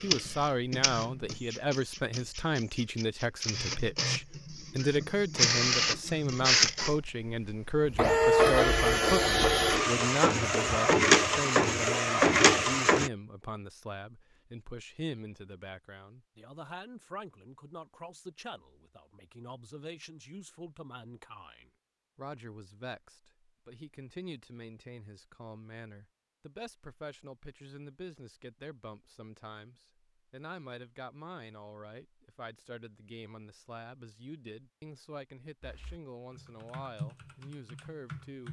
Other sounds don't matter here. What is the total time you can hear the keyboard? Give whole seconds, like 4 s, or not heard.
3 s.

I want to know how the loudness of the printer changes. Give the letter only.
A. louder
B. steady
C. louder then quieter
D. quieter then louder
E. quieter
A.